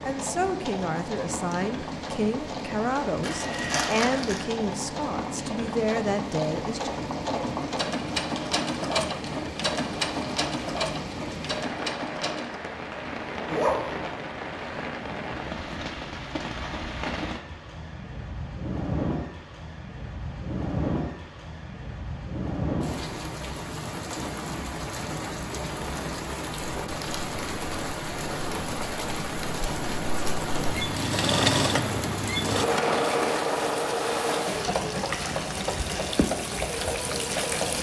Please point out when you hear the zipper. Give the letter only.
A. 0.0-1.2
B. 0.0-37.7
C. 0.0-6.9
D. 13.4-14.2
D.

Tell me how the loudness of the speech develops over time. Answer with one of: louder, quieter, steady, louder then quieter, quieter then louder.
steady.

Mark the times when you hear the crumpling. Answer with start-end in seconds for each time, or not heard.
3.2-4.5.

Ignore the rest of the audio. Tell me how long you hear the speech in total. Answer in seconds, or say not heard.
7 s.